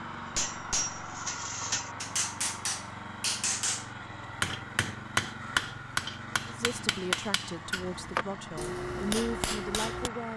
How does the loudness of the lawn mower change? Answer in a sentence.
The volume of the lawn mower stays about the same.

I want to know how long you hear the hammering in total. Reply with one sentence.
The hammering can be heard for 10 seconds in total.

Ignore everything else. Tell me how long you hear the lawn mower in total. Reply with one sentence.
You can hear the lawn mower for 10 seconds altogether.